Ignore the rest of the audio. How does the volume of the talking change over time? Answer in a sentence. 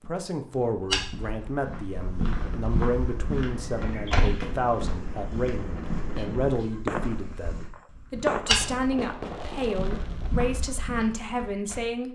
The volume of the talking stays about the same.